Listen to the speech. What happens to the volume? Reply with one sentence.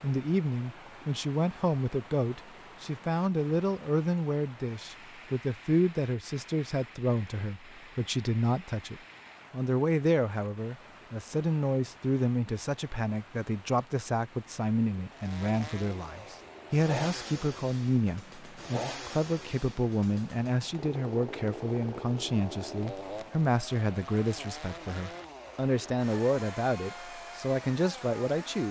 The loudness of the speech stays about the same.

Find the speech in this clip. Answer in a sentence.
You can hear the speech from 0.0 to 28.6 s.